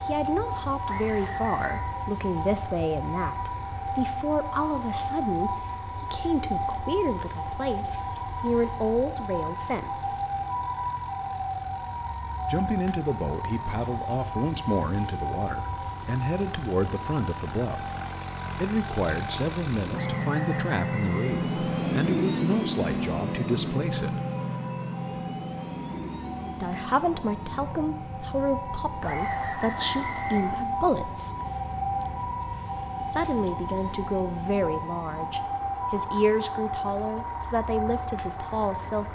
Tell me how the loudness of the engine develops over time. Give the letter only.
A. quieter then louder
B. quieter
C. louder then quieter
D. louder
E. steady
C.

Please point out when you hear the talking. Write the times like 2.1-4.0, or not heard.
0.1-10.2, 12.4-17.9, 18.6-24.2, 26.6-31.3, 33.0-39.1.